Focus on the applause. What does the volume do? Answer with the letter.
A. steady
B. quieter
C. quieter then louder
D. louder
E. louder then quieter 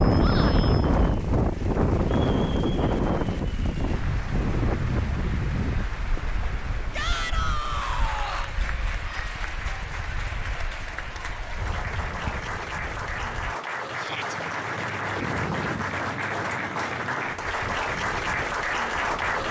D.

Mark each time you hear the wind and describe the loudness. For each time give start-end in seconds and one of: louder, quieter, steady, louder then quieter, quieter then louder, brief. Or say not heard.
0.0-19.4 quieter then louder.